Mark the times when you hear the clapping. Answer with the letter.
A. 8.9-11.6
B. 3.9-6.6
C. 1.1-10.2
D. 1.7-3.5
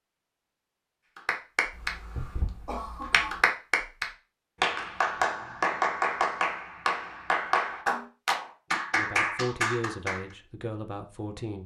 C.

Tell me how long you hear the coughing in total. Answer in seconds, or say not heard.
2 s.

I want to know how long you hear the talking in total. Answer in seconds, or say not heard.
3 s.